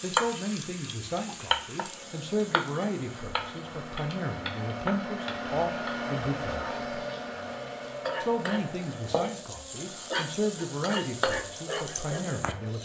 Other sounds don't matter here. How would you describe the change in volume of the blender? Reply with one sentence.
The volume of the blender goes up, then down.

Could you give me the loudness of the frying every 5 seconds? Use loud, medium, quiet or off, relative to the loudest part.
loud, medium, loud.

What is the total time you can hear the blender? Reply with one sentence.
You can hear the blender for 13 seconds altogether.